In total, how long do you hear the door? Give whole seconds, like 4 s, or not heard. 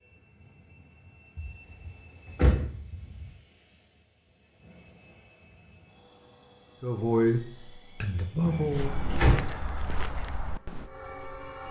3 s.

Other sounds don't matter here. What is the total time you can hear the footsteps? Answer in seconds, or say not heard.
3 s.